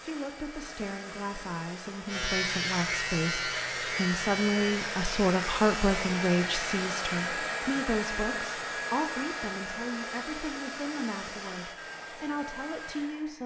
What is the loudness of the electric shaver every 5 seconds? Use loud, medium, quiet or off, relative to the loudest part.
loud, medium, off.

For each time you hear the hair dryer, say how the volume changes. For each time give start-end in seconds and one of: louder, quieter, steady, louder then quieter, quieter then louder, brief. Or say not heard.
0.0-13.4 louder then quieter.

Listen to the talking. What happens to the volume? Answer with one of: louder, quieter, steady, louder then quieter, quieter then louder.
louder then quieter.